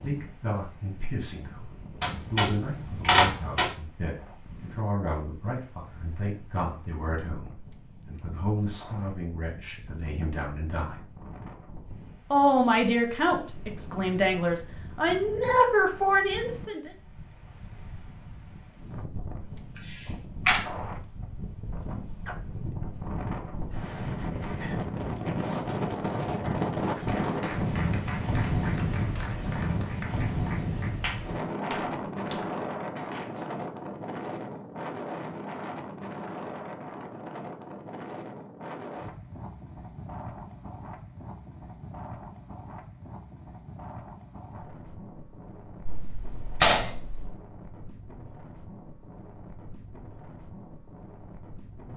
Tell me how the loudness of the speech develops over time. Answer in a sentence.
The loudness of the speech goes up.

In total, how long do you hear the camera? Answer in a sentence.
The camera can be heard for 4 seconds in total.